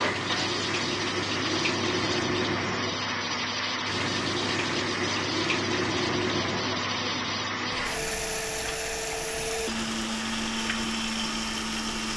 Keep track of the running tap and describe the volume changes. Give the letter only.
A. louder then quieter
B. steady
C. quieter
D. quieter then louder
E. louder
C.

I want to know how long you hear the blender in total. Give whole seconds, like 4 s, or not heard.
12 s.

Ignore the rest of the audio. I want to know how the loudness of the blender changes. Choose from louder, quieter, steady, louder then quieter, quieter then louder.
steady.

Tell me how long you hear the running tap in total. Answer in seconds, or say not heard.
12 s.